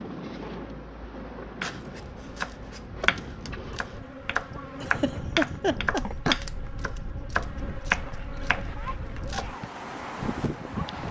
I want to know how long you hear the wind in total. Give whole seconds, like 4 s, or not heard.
11 s.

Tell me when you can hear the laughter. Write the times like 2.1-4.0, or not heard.
4.8-6.4.